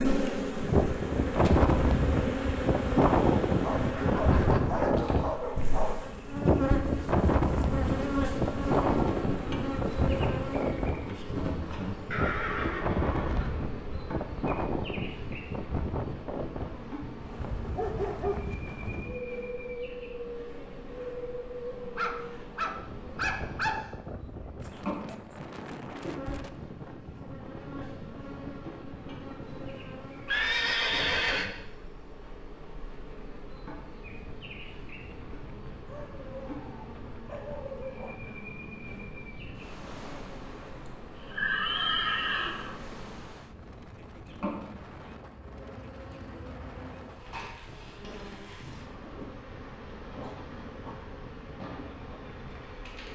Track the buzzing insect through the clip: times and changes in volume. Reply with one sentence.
The buzzing insect can be heard from 0.0 to 53.1 s, getting quieter.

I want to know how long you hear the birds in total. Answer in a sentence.
You can't hear the birds here.